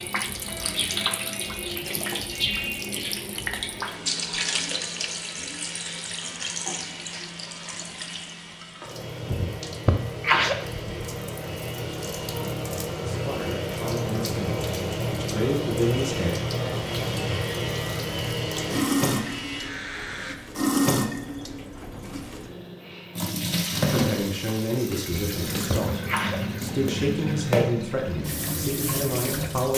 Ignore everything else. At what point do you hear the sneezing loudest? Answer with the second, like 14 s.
10 s.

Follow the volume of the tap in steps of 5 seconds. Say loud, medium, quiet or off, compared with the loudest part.
loud, medium, loud, loud, loud, loud.